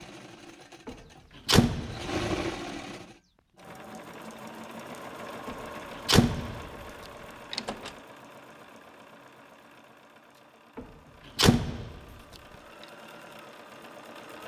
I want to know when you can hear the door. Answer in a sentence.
You can hear the door from 0.8 to 2.1 s, from 5.5 to 6.7 s, from 7.5 to 7.9 s and from 10.8 to 12.0 s.